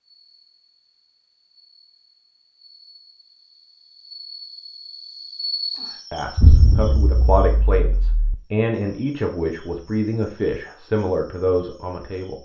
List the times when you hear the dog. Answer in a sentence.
The dog can't be heard in this clip.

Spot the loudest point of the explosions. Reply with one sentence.
The loudest moment of the explosions is at 7 seconds.